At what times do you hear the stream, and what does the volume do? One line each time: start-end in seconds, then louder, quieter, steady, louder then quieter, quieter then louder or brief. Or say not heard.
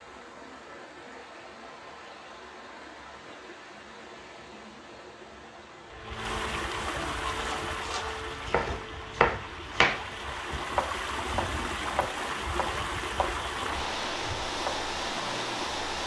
0.0-16.0 louder.